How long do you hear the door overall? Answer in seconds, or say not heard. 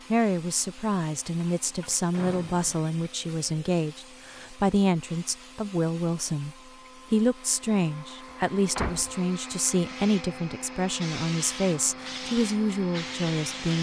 2 s.